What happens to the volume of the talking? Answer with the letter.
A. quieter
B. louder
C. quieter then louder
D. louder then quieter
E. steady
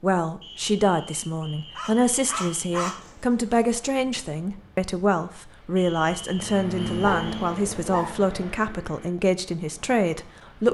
E.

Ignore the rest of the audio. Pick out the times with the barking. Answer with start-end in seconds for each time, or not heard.
1.8-3.6, 7.0-8.2.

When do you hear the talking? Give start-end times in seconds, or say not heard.
0.0-10.6.